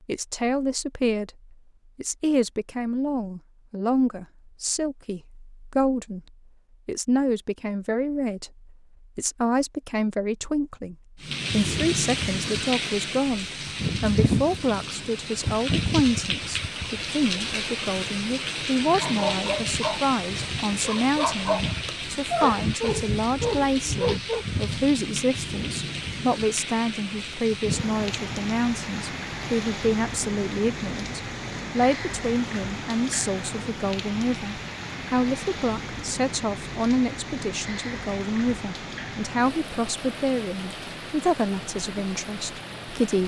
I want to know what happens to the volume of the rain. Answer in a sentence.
The volume of the rain goes down.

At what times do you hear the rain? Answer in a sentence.
The rain can be heard from 11.2 to 43.2 s.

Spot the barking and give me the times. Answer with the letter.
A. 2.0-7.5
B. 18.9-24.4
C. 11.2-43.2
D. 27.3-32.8
B.